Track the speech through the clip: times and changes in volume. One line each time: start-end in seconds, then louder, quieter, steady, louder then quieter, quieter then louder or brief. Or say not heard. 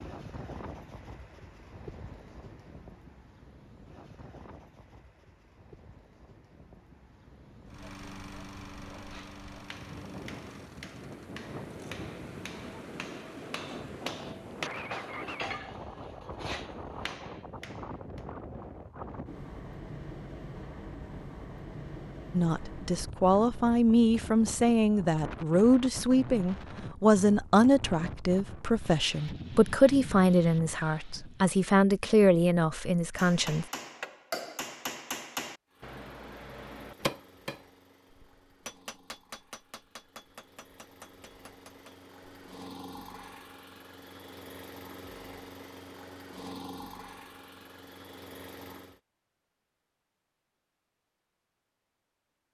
22.4-33.6 steady.